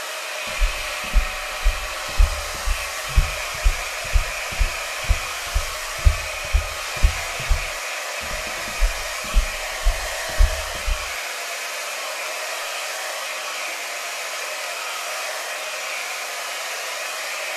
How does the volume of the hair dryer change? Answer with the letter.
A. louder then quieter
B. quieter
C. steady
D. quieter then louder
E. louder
C.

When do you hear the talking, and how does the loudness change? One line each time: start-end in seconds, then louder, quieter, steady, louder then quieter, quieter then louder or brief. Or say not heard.
not heard.